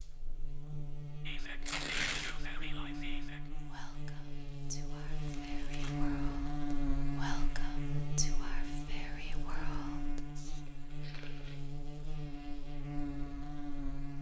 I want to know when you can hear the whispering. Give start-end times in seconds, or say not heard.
1.2-10.6.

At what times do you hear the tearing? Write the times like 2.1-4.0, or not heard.
1.6-2.4, 5.2-6.0, 10.7-11.8.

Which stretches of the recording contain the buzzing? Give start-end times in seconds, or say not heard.
0.0-14.1.